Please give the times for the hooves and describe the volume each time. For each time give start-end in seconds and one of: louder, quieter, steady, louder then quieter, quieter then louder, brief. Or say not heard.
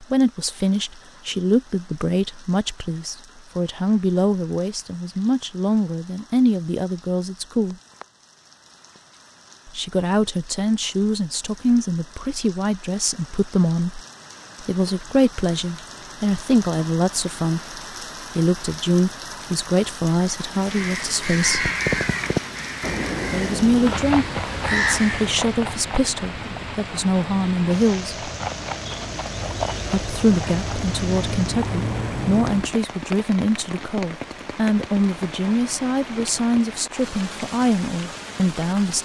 21.5-32.8 quieter then louder.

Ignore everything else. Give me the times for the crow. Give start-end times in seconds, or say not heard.
20.5-25.4.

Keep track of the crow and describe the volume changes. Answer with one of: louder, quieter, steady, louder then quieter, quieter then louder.
quieter then louder.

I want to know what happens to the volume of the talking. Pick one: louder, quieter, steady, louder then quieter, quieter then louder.
steady.